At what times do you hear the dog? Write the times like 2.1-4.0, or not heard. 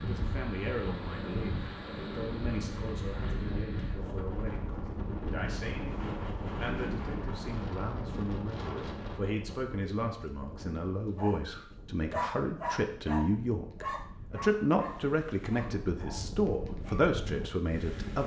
11.2-17.1.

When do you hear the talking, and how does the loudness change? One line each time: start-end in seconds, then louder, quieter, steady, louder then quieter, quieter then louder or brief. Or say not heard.
0.0-18.2 louder.